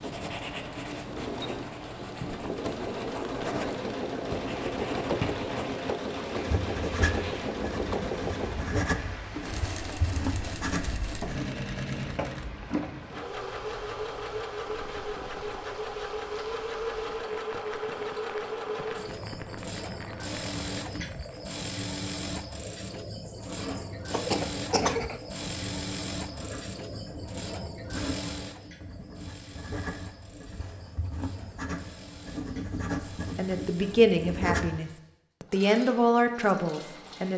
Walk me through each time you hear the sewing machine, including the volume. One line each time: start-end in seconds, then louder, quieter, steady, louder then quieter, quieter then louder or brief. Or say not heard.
0.0-37.3 quieter.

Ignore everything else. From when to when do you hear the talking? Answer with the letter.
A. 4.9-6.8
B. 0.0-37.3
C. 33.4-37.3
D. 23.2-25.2
C.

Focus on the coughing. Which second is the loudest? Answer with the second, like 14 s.
25 s.